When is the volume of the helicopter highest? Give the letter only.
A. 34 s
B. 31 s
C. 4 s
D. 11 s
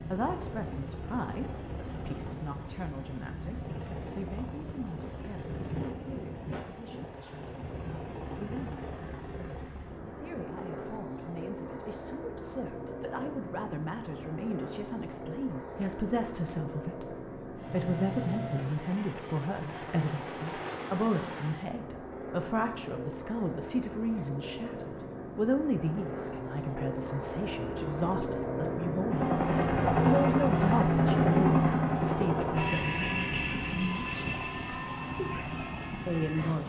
B.